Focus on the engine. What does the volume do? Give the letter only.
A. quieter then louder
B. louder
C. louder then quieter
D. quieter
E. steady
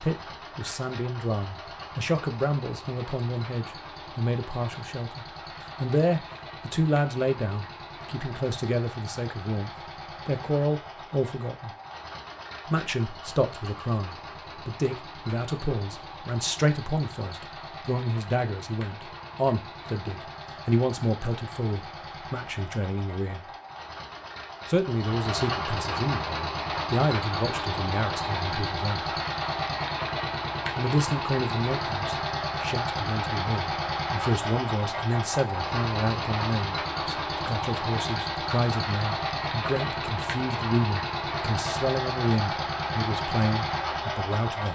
B.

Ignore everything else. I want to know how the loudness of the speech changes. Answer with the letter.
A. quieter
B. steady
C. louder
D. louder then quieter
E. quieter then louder
B.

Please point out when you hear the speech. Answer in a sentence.
The speech can be heard from 0.0 to 11.7 s, from 12.7 to 23.5 s, from 24.6 to 29.1 s and from 30.8 to 44.7 s.